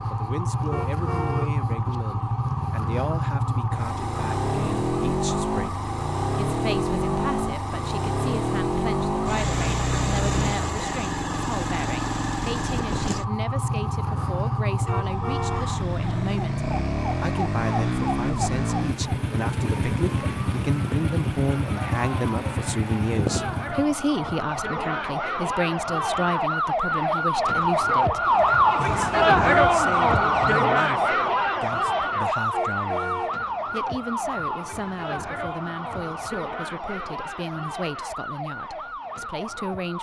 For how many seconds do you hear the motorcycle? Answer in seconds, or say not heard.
24 s.